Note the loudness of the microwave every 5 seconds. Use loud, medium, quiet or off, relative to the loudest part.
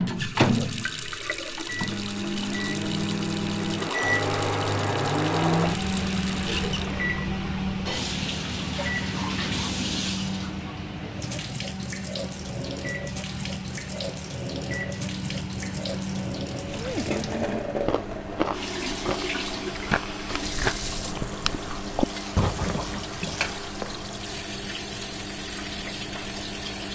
loud, loud, medium, medium, medium, medium.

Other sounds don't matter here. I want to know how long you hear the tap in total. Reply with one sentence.
You can hear the tap for 27 seconds altogether.